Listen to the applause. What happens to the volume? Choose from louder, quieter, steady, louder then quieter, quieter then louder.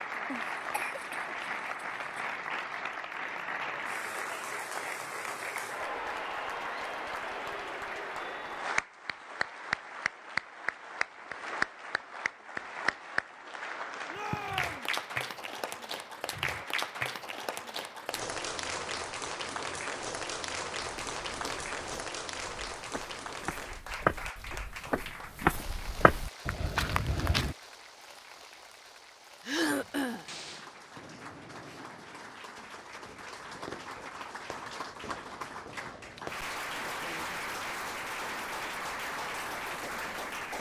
quieter then louder.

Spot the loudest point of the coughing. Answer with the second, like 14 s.
30 s.